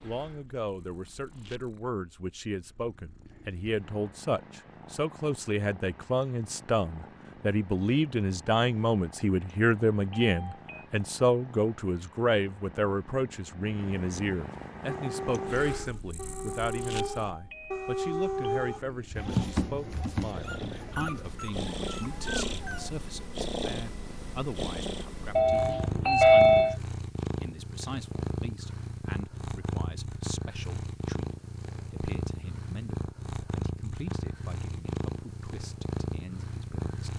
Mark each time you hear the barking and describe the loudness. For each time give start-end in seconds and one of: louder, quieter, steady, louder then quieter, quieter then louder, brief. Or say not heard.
14.8-23.1 louder then quieter.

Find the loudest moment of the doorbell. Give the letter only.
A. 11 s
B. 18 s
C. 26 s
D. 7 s
C.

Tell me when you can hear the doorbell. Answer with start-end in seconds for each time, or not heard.
10.1-10.8, 16.9-18.8, 25.4-26.8.